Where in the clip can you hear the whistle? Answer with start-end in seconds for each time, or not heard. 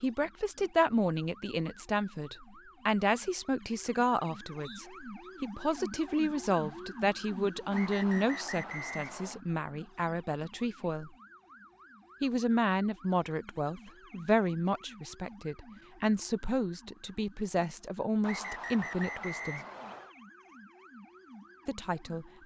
4.6-5.3, 7.7-9.4, 18.2-20.1.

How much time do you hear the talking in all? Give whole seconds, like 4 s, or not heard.
19 s.